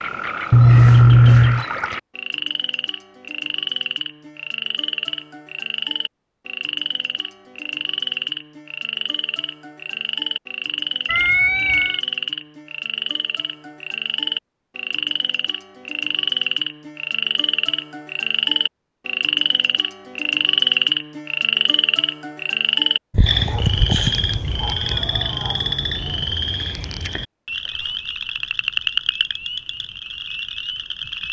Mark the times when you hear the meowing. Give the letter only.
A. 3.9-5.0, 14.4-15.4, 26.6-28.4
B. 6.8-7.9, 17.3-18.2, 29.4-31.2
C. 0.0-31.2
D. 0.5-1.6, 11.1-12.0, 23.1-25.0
D.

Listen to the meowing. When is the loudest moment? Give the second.
1 s.